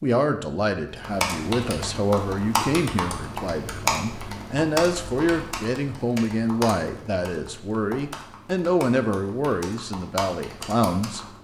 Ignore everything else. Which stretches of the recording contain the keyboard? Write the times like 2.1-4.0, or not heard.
0.9-11.3.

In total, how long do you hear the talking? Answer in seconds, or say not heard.
11 s.